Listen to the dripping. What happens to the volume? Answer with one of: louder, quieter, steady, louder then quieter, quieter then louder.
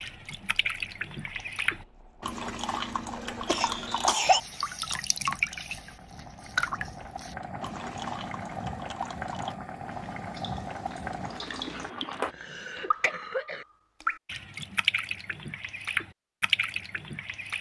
quieter then louder.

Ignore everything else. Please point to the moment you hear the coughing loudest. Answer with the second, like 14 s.
4 s.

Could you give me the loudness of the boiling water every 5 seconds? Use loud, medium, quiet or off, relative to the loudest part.
quiet, loud, loud, off.